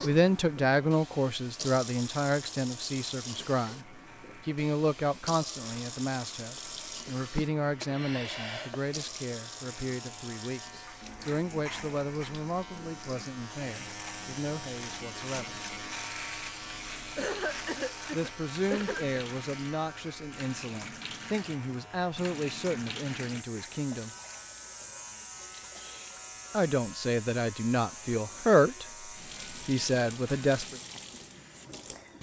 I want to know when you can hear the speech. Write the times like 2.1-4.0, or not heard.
0.0-3.9, 4.5-15.6, 18.1-24.1, 26.5-30.8.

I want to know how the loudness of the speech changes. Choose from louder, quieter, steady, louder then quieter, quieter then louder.
quieter then louder.